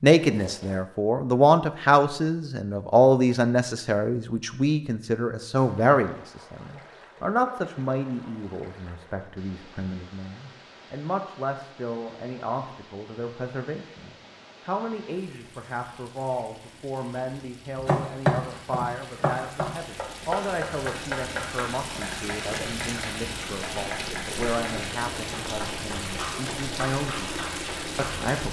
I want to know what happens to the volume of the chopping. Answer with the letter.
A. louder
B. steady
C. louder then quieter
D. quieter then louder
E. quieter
E.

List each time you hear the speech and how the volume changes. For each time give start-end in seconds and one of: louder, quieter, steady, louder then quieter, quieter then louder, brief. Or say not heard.
0.0-28.4 quieter.